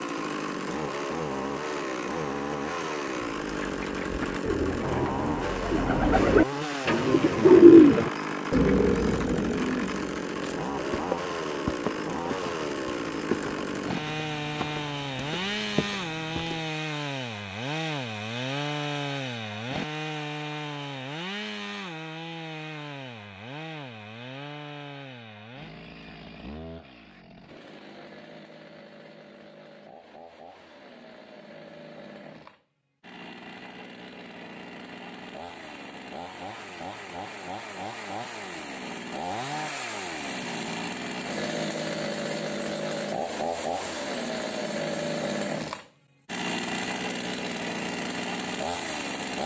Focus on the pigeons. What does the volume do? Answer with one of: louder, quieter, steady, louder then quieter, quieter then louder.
louder then quieter.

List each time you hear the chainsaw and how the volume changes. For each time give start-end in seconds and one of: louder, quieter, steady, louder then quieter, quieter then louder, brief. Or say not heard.
0.0-49.4 quieter then louder.